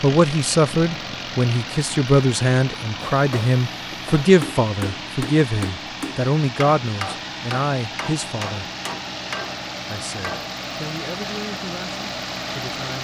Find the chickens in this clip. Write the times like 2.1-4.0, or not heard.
not heard.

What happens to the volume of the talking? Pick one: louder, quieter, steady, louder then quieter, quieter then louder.
quieter.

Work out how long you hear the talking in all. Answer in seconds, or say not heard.
12 s.